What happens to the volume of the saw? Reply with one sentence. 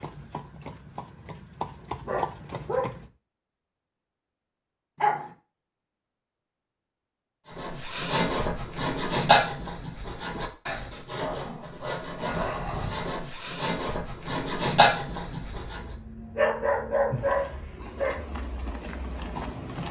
The loudness of the saw goes down, then up.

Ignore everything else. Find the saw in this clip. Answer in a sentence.
The saw can be heard from 7.5 to 15.9 s.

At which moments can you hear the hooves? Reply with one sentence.
You can hear the hooves from 0.0 to 3.1 s and from 17.1 to 19.8 s.